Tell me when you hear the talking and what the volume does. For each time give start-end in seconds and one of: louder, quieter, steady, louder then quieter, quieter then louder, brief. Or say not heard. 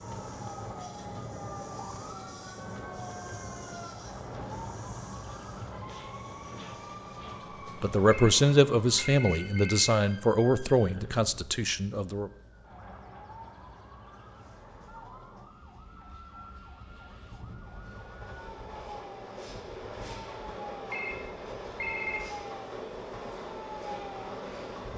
7.8-12.3 quieter.